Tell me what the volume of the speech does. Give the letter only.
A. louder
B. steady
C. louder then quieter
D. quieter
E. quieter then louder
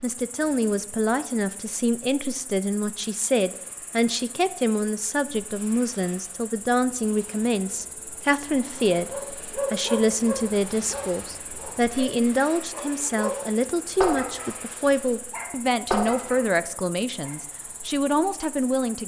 B.